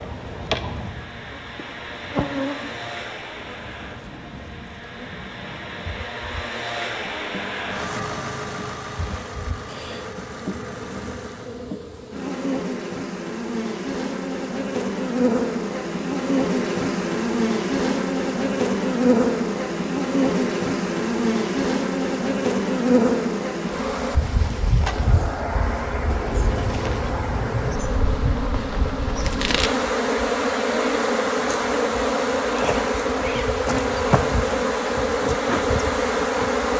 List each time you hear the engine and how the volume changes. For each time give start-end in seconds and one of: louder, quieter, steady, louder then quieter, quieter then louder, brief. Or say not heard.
0.0-11.7 louder then quieter.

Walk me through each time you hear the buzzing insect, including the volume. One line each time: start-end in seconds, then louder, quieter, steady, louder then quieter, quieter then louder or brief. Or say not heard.
0.0-36.7 louder.